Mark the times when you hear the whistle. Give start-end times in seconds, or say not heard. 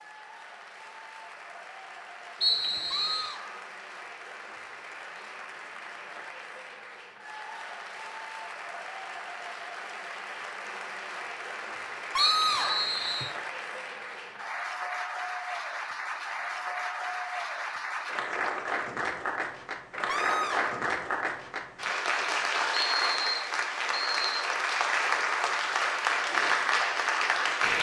2.4-3.4, 12.2-13.3, 22.7-24.4.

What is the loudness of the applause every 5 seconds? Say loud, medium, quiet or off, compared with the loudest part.
quiet, quiet, medium, medium, loud, loud.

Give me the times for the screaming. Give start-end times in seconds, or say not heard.
2.9-3.6, 12.1-12.9, 20.1-20.8.